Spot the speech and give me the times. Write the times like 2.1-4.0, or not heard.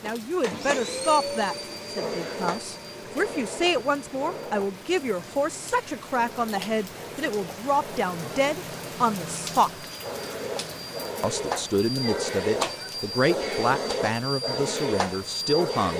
0.0-9.9, 11.2-15.9.